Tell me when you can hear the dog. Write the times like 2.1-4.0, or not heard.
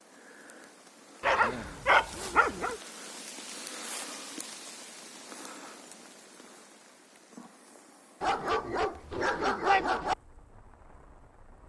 1.2-2.8, 8.2-10.2.